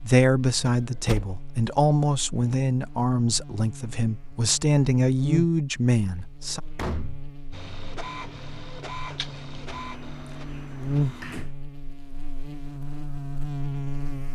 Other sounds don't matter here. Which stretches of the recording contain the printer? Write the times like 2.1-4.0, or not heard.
7.5-11.4.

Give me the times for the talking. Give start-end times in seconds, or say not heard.
0.0-6.6.